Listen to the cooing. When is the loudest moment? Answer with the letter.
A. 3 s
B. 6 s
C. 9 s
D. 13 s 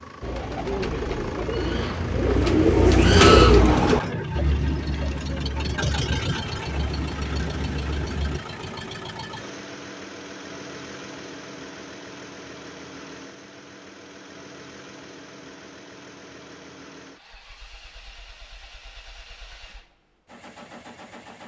A.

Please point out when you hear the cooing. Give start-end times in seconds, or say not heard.
0.2-8.4.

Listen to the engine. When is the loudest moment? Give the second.
6 s.